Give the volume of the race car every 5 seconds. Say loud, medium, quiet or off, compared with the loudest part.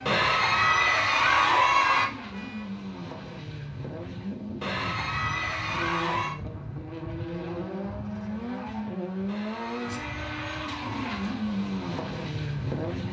medium, loud, loud.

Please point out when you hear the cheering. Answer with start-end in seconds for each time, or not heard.
0.1-2.0, 4.6-6.3, 9.2-11.3.